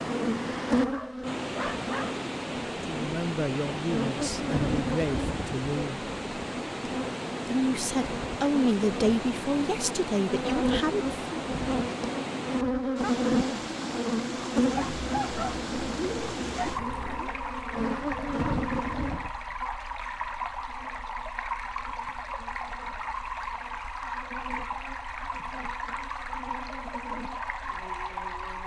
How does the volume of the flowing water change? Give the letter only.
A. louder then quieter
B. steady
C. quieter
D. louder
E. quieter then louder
B.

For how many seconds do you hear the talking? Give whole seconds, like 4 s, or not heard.
7 s.